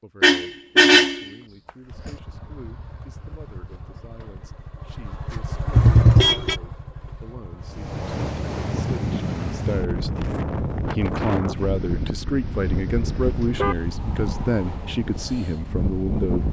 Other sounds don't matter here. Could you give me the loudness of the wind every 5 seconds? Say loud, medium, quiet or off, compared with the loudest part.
off, loud, loud, loud.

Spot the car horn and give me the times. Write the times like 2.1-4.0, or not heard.
0.2-1.2, 5.7-6.6, 13.1-13.8.